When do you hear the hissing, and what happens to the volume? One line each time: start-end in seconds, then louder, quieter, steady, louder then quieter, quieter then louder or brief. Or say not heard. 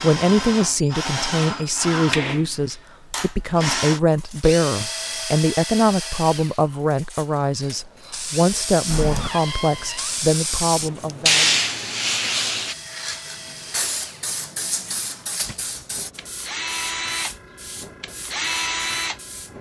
7.6-19.5 louder then quieter.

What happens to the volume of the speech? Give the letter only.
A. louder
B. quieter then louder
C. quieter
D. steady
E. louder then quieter
D.